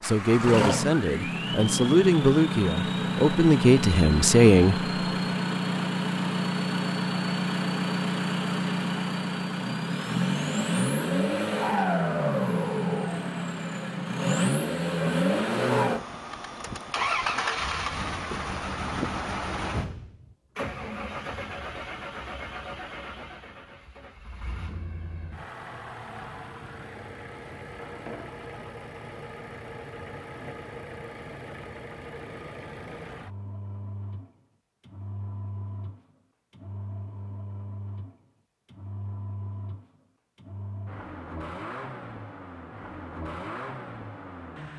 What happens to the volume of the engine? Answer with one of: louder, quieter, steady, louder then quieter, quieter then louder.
quieter.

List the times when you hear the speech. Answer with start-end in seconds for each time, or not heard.
0.0-4.9.